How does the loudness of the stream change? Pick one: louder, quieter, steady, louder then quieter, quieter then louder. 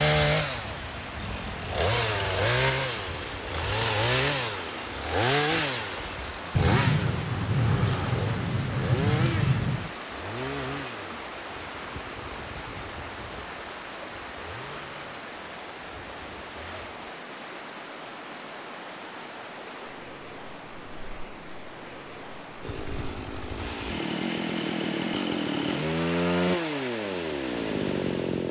steady.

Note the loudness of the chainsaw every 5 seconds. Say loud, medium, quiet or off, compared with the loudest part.
loud, loud, quiet, quiet, medium, loud.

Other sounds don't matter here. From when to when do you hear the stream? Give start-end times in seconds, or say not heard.
0.2-28.4.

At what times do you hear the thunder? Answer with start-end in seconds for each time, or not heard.
6.5-9.9.